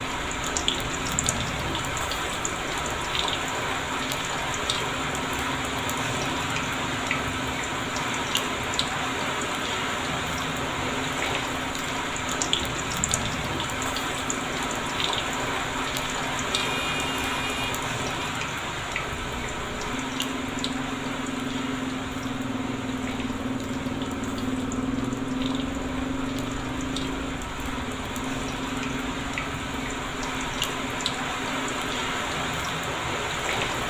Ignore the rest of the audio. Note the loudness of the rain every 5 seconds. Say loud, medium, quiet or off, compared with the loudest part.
loud, loud, loud, loud, medium, medium, loud.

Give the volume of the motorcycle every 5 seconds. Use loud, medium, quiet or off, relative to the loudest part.
medium, medium, medium, medium, loud, loud, medium.